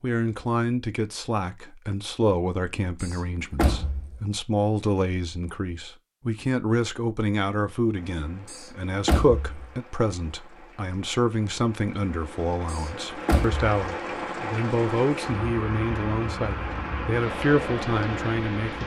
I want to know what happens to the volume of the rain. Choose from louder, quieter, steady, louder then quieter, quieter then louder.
louder.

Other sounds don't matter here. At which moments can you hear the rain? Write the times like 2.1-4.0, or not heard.
8.0-18.8.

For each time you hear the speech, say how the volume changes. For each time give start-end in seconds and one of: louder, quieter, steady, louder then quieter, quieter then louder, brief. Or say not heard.
0.0-18.8 steady.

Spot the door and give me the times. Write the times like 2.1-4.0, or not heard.
3.0-4.2, 8.4-9.7, 12.7-13.7.